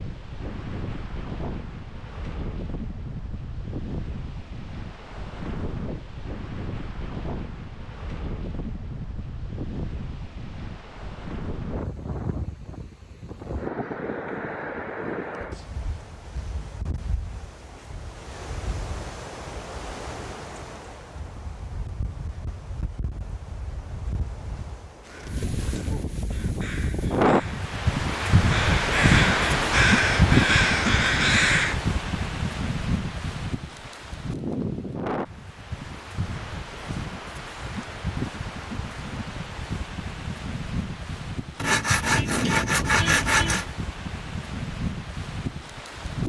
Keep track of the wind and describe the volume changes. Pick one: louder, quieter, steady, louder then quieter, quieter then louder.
louder then quieter.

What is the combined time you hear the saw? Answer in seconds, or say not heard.
2 s.